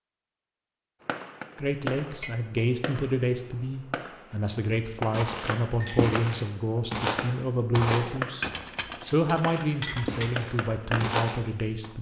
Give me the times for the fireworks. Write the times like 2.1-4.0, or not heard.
1.0-11.2.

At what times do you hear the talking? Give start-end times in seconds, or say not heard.
1.6-11.9.